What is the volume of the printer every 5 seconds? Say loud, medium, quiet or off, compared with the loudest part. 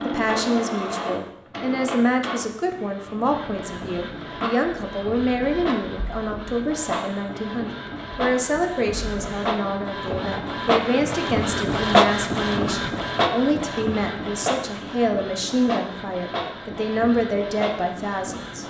medium, medium, loud, medium.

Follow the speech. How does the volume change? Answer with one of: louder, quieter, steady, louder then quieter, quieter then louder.
steady.